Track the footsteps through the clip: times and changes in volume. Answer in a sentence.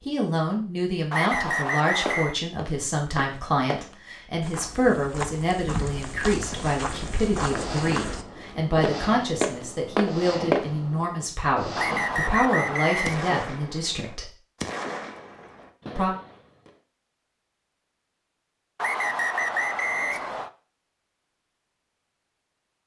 You can hear the footsteps from 2.0 to 10.7 s, getting louder.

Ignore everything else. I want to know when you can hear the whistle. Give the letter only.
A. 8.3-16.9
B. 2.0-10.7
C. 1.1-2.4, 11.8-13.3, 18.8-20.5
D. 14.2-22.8
C.